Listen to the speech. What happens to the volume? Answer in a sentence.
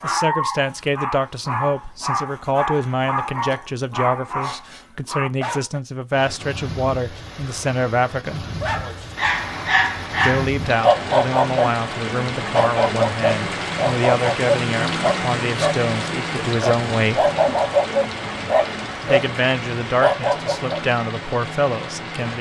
The loudness of the speech stays about the same.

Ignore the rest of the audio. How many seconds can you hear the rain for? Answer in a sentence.
The rain can be heard for 16 seconds in total.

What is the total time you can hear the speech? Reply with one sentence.
The speech can be heard for 19 seconds in total.